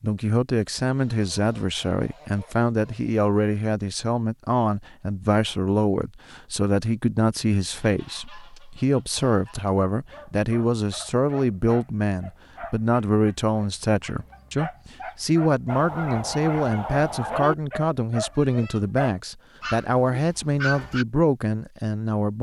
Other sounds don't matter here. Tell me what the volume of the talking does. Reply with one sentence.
The volume of the talking stays about the same.